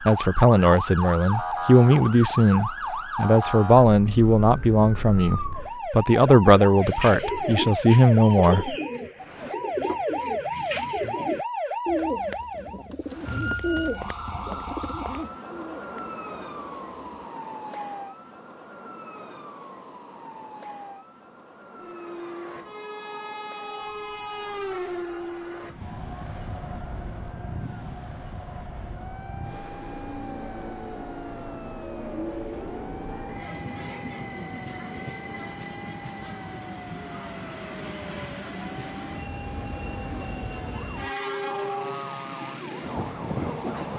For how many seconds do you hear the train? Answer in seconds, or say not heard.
22 s.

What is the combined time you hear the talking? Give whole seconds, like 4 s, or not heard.
9 s.